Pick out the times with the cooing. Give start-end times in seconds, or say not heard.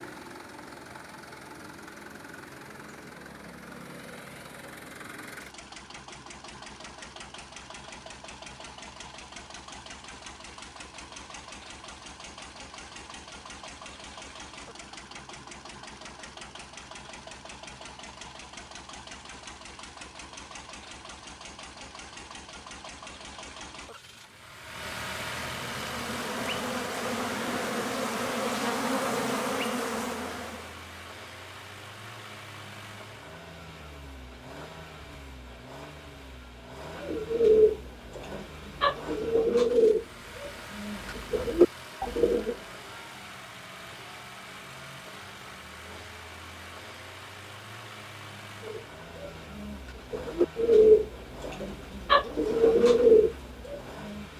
37.0-42.5, 48.6-54.2.